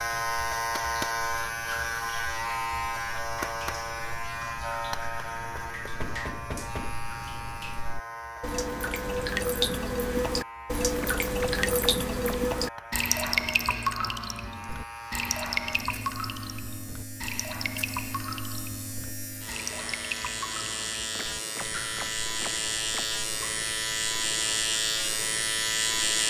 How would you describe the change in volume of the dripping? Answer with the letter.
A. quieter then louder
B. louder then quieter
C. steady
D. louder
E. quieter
B.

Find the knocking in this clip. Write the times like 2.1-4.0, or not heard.
6.0-7.0, 10.9-12.4, 21.1-23.1.